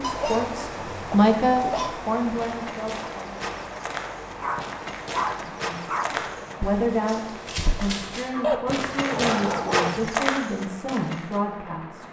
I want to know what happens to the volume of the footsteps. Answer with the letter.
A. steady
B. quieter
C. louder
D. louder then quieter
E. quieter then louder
C.